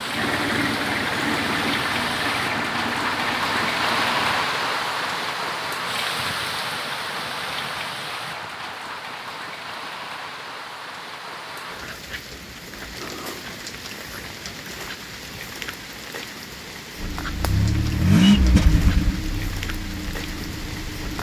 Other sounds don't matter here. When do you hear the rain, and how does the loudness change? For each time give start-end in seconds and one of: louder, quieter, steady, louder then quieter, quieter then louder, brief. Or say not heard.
0.0-21.1 quieter.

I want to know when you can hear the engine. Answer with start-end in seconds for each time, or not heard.
0.0-4.5, 17.0-21.1.